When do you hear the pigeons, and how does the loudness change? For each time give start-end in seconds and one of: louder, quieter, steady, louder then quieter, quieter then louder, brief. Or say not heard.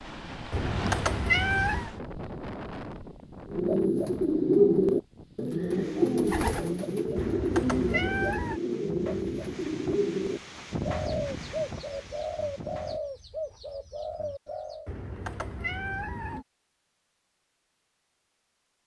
3.5-14.9 quieter.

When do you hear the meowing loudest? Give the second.
1 s.